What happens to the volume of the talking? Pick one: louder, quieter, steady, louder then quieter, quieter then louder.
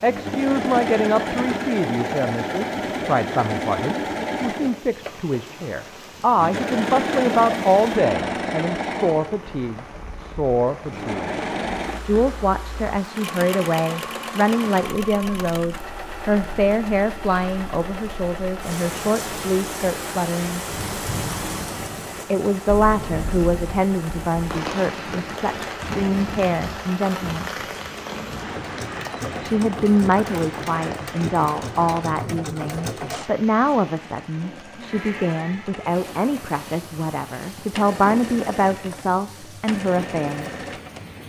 steady.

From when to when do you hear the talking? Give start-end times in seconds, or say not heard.
0.0-11.3, 12.1-20.6, 22.3-27.6, 29.4-40.5.